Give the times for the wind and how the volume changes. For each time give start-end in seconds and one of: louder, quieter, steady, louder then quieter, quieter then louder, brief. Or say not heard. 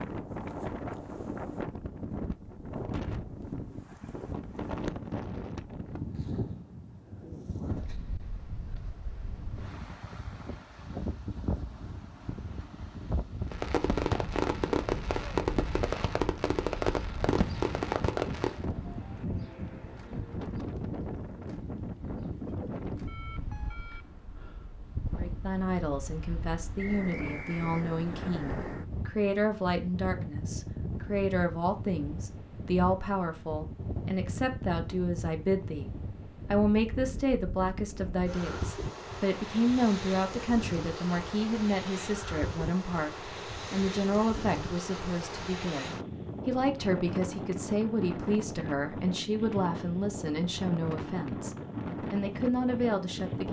0.0-53.4 steady.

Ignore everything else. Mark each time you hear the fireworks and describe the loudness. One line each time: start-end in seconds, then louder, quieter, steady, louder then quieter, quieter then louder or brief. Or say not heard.
13.4-18.6 steady.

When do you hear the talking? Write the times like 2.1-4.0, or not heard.
25.1-53.4.